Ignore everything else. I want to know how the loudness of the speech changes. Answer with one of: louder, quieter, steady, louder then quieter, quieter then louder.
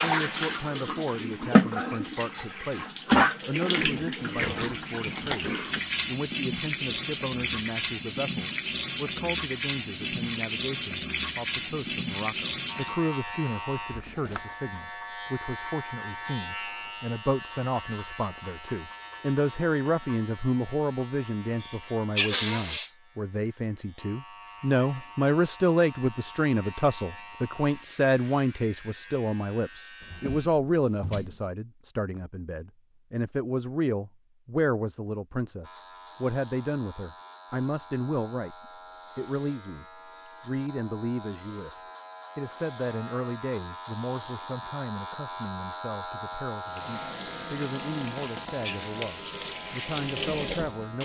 louder then quieter.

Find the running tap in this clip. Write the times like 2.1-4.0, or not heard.
0.0-13.0, 46.5-51.0.